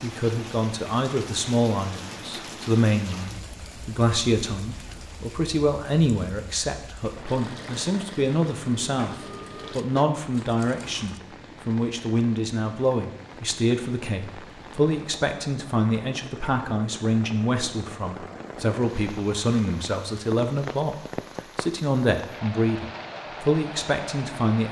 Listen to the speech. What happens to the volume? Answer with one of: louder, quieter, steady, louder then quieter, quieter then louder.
steady.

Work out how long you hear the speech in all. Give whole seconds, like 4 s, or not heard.
24 s.